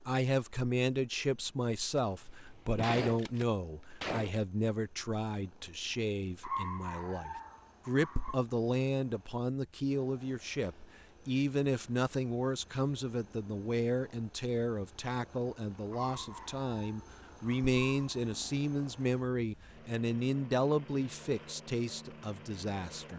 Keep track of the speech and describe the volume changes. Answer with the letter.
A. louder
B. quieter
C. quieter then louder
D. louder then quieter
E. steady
E.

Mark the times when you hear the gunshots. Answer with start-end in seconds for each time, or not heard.
1.9-4.3.